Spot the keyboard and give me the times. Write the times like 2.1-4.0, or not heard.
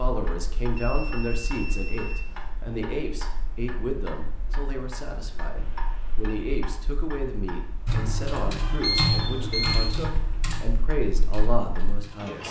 7.8-12.4.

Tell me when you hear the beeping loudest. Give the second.
9 s.